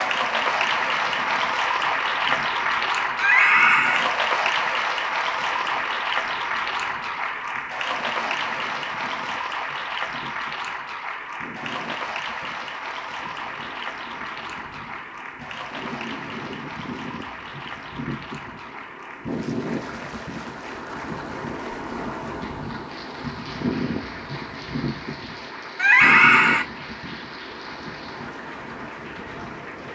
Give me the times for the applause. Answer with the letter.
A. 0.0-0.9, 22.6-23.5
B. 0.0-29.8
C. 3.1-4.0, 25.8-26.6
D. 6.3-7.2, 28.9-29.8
B.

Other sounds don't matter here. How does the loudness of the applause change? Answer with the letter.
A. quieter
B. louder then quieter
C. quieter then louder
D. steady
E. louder
A.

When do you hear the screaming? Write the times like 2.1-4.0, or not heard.
3.1-4.0, 25.8-26.6.